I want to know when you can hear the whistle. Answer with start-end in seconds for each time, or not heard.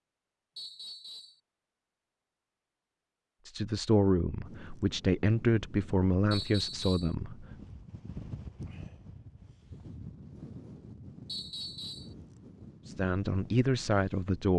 0.6-1.4, 6.3-7.2, 11.2-12.2.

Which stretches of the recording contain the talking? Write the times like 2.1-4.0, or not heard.
3.5-7.5, 12.8-14.5.